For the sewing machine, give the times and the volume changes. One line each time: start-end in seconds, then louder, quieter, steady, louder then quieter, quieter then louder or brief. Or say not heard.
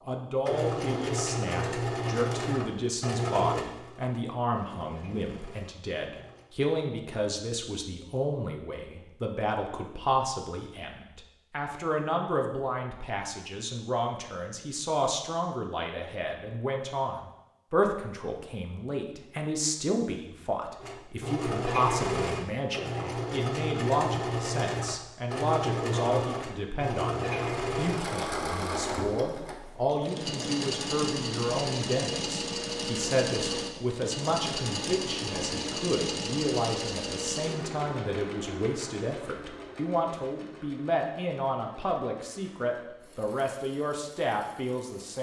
0.0-6.5 quieter
20.8-45.1 quieter.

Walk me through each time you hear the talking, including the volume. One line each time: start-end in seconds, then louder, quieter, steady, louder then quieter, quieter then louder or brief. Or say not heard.
0.1-45.1 steady.